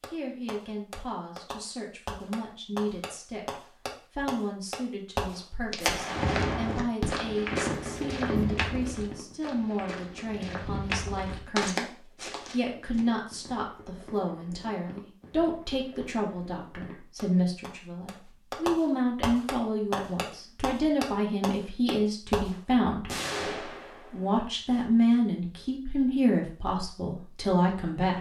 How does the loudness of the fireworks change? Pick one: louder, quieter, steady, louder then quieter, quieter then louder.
quieter then louder.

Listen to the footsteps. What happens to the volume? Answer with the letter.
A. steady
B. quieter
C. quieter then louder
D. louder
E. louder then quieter
C.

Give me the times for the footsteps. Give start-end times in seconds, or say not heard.
5.7-13.0.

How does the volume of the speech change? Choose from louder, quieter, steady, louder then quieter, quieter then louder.
louder.